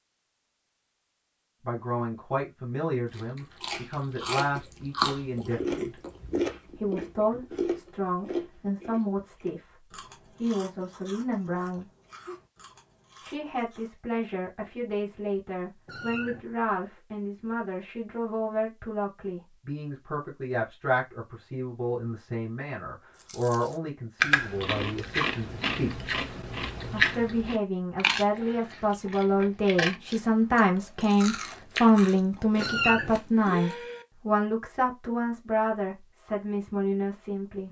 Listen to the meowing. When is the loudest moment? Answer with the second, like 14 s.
33 s.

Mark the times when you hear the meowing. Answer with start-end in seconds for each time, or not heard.
15.8-16.4, 32.5-33.1.